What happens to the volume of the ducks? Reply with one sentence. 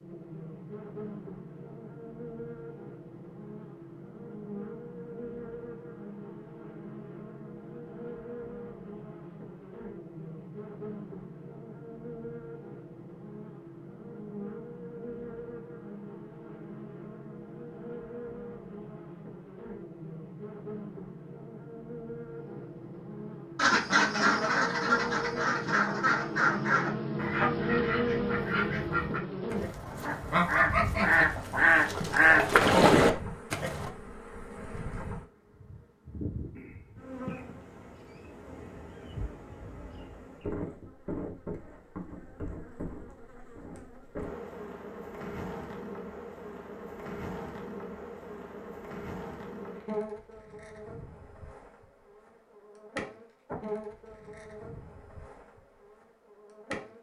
The loudness of the ducks goes down, then up.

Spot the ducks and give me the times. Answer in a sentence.
The ducks can be heard from 23.6 to 33.9 s.